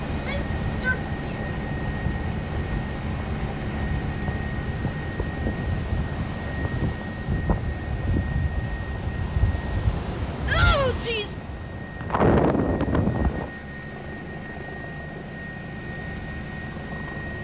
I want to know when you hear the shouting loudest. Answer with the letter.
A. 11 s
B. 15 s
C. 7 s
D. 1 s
A.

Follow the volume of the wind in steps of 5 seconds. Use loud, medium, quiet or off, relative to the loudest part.
medium, medium, loud, off.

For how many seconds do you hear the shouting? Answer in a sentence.
You can hear the shouting for 2 seconds altogether.